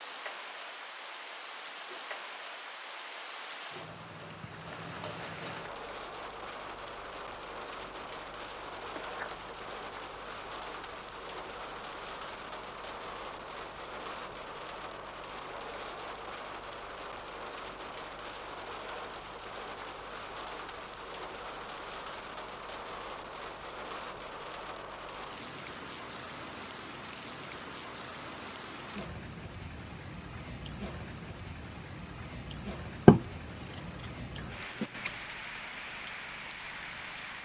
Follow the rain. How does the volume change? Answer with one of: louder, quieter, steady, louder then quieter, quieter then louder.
steady.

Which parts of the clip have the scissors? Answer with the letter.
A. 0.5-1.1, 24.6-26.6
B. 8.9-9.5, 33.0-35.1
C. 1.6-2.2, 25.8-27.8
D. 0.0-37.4
B.